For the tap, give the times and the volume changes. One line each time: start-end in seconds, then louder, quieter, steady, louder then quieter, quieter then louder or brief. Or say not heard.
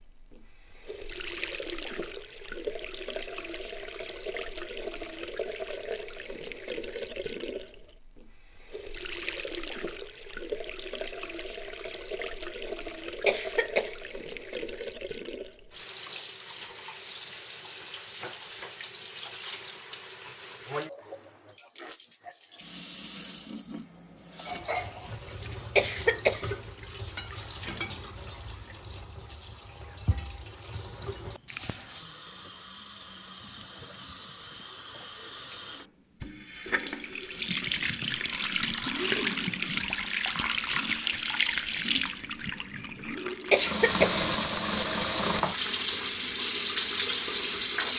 0.0-47.9 louder.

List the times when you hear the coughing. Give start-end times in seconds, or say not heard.
13.2-13.9, 25.8-26.5, 43.5-44.2.